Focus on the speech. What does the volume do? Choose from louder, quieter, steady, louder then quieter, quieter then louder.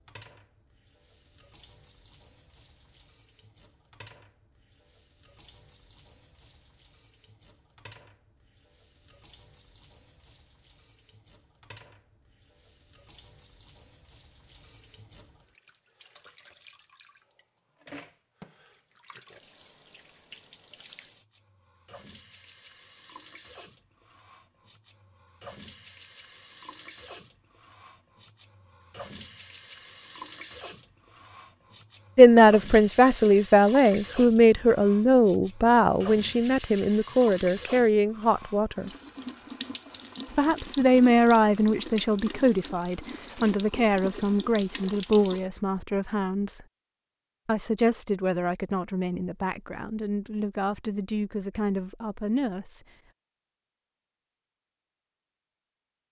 quieter.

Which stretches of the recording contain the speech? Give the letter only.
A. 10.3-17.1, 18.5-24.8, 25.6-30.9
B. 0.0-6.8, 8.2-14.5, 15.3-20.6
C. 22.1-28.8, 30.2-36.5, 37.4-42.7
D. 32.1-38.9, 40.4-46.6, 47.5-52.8
D.